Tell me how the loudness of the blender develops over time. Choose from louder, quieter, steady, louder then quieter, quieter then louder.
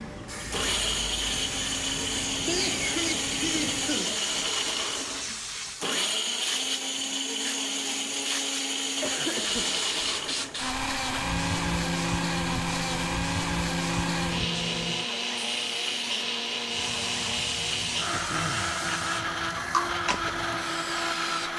steady.